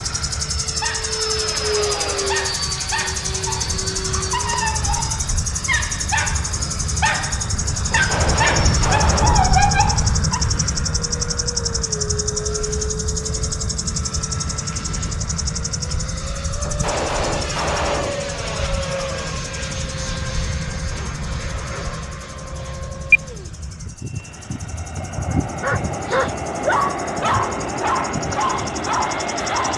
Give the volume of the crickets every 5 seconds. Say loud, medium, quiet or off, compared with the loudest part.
loud, loud, loud, medium, quiet, medium.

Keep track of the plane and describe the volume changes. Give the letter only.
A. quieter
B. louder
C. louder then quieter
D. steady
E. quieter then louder
D.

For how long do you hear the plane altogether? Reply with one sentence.
You can hear the plane for 30 seconds altogether.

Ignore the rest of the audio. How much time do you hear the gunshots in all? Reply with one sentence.
The gunshots can be heard for 3 seconds in total.